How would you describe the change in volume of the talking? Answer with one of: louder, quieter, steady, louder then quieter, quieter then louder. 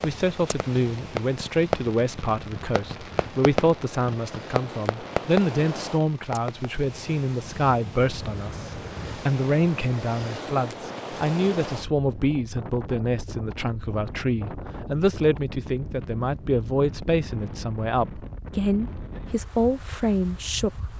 steady.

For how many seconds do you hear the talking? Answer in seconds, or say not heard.
21 s.